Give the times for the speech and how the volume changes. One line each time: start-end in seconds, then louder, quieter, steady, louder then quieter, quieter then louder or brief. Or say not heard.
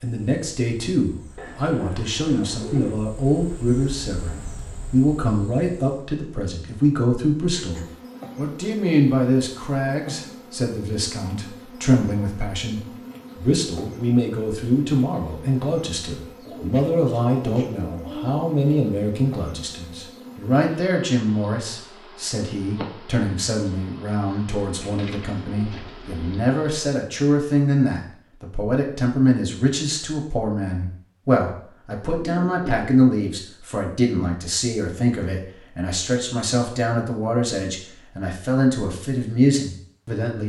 0.0-40.4 steady.